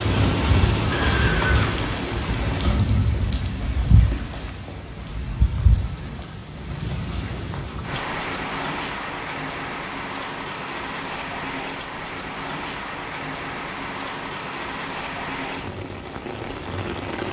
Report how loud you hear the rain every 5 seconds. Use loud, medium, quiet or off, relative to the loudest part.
loud, medium, medium, medium.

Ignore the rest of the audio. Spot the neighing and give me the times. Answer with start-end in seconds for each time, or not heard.
0.9-1.8.